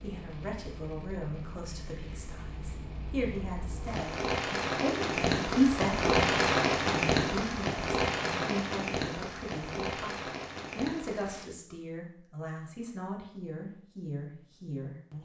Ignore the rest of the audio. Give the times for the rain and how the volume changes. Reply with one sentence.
You can hear the rain from 0.0 to 11.4 s, getting louder then quieter.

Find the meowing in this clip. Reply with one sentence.
You can't hear the meowing here.